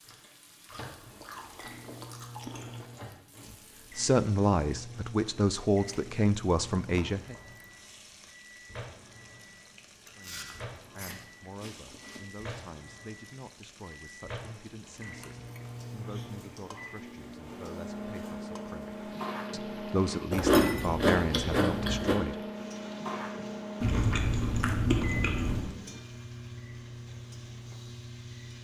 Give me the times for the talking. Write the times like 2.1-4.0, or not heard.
4.0-7.3, 10.2-22.4.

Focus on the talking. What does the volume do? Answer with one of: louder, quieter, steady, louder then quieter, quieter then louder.
quieter then louder.